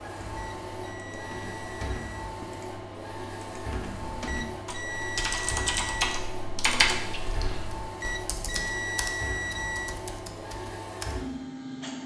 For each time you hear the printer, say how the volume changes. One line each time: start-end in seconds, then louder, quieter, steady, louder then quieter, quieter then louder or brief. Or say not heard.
0.0-12.0 steady.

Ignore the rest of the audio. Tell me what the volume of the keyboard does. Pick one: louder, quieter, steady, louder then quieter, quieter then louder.
louder then quieter.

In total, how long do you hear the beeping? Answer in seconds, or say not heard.
6 s.